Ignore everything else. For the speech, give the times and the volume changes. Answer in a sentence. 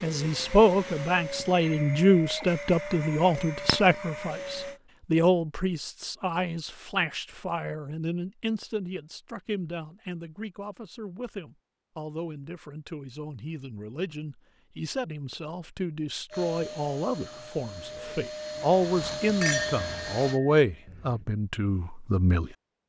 The speech can be heard from 0.0 to 22.5 s, getting quieter then louder.